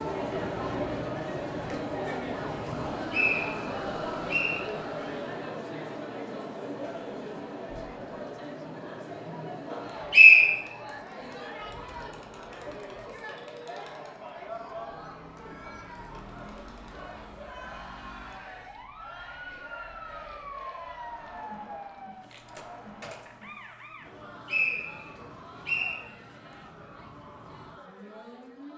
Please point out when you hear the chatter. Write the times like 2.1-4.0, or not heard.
0.0-28.7.